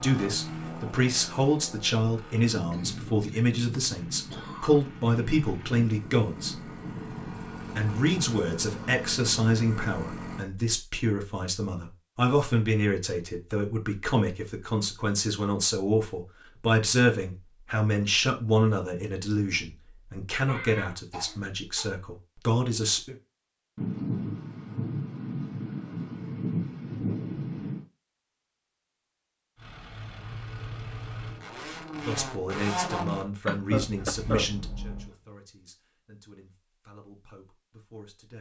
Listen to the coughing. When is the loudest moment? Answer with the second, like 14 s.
34 s.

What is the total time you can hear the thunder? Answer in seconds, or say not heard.
9 s.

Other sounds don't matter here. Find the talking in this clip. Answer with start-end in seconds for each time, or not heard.
0.0-6.7, 7.8-23.1, 31.9-38.3.